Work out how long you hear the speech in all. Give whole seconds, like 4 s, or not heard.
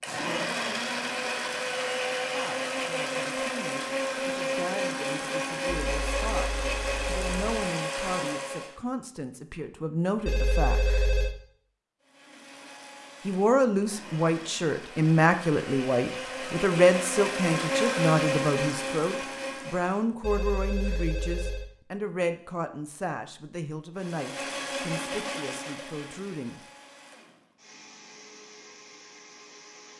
22 s.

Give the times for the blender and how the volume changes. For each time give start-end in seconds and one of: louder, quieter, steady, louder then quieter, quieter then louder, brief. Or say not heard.
0.0-8.8 steady
12.0-20.1 louder
23.9-29.9 quieter.